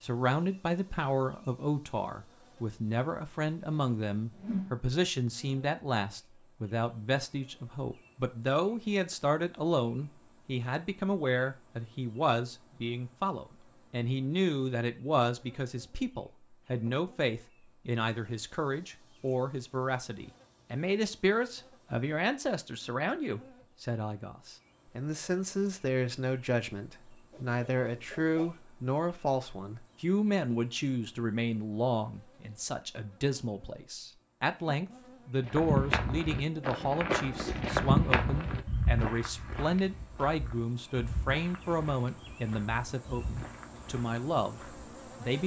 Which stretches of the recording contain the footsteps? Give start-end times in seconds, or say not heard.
35.4-44.9.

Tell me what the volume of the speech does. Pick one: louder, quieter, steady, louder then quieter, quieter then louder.
steady.